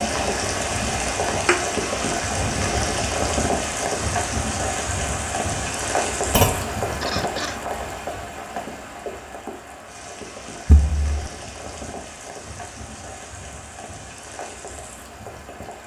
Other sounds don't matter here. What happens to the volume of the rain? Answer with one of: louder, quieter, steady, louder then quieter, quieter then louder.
quieter.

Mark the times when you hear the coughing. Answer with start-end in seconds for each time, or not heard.
7.0-7.6.